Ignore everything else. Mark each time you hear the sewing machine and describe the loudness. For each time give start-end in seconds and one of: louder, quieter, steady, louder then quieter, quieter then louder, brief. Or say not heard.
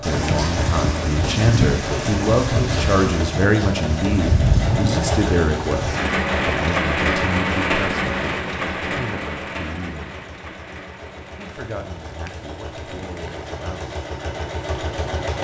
0.0-15.4 quieter then louder.